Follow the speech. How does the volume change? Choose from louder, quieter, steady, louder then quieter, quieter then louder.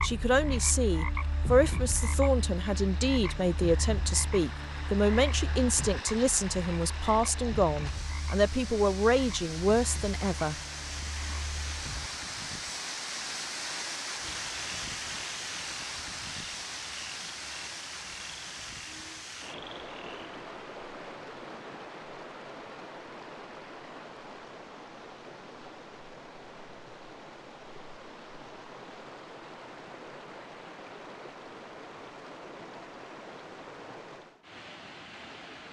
steady.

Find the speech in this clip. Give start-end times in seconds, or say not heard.
0.0-10.6.